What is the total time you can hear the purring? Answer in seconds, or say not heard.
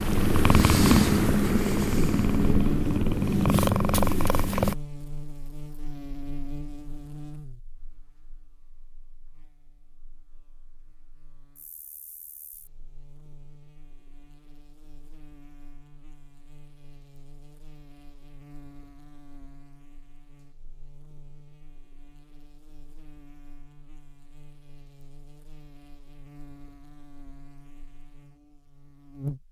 5 s.